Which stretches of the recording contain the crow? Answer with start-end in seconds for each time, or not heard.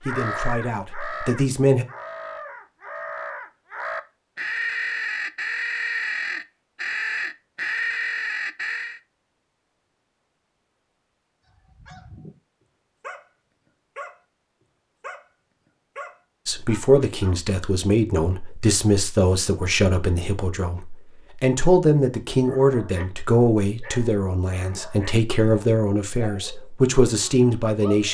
0.0-9.0.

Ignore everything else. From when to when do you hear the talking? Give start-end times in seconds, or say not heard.
0.0-1.9, 16.4-28.0.